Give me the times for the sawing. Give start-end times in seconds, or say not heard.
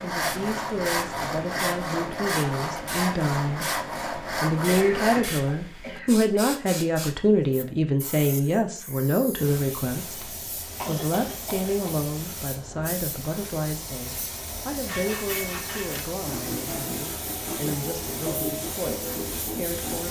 0.0-5.2, 14.8-20.0.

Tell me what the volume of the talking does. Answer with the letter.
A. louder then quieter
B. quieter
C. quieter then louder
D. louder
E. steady
A.